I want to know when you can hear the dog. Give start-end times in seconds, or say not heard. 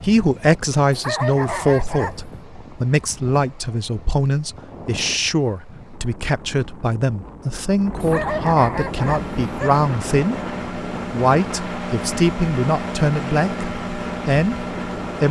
0.9-2.3, 8.0-9.8.